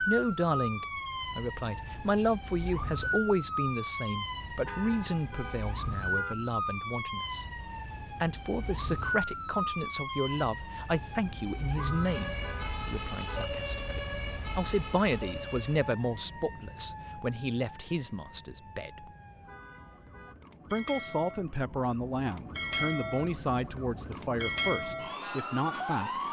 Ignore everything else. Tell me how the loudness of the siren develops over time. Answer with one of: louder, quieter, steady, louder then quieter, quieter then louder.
quieter then louder.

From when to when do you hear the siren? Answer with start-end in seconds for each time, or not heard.
0.0-26.2.